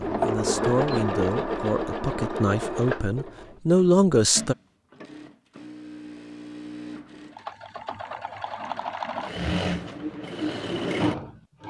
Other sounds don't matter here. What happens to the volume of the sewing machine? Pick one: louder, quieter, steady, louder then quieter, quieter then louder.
quieter then louder.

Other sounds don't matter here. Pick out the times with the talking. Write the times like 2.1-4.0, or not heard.
0.0-4.5.